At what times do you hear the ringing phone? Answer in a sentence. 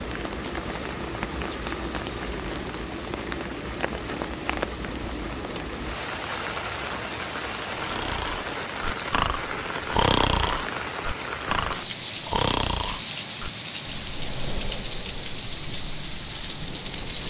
The ringing phone can't be heard in this clip.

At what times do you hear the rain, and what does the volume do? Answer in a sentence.
You can hear the rain from 0.0 to 17.2 s, at a steady volume.